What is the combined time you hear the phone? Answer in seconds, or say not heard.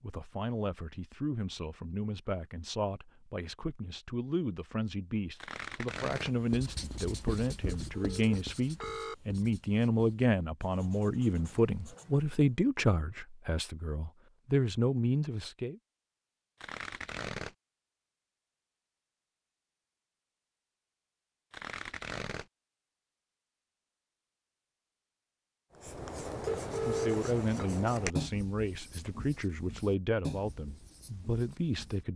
3 s.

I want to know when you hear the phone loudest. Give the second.
27 s.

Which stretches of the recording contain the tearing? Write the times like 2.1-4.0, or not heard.
5.4-6.3, 16.6-17.6, 21.5-22.4.